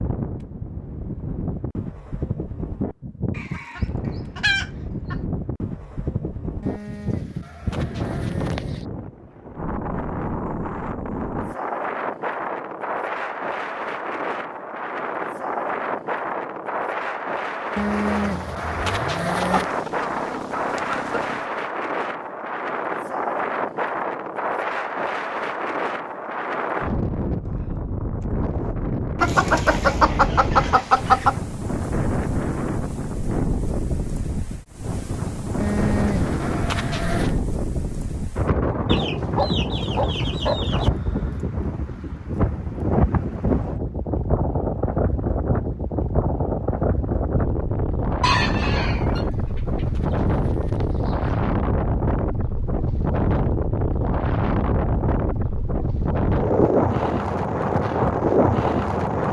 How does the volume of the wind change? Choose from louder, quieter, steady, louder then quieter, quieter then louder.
louder.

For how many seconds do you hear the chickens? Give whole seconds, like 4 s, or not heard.
10 s.